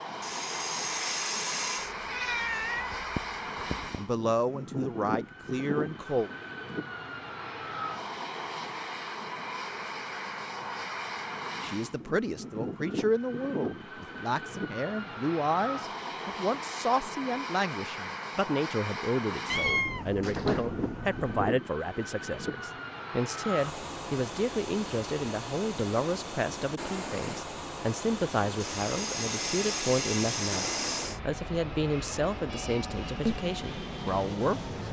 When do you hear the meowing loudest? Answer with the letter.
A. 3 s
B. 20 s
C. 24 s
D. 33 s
B.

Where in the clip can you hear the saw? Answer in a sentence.
The saw can be heard from 0.2 to 1.9 s and from 28.6 to 31.2 s.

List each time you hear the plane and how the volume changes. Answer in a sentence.
The plane can be heard from 0.0 to 34.8 s, at a steady volume.